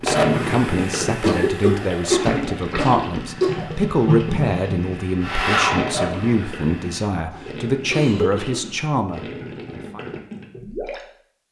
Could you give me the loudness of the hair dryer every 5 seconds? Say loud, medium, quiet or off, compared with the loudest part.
medium, loud, off.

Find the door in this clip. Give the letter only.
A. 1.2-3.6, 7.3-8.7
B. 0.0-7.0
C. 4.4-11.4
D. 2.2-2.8
D.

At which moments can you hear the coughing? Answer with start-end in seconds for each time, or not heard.
1.2-3.6, 7.3-8.7.